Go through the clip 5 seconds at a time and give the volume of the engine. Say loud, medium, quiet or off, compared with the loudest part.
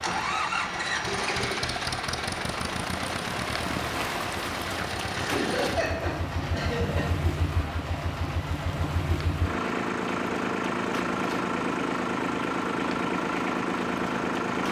loud, medium, loud.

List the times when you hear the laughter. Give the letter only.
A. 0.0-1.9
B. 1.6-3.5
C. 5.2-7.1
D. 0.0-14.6
C.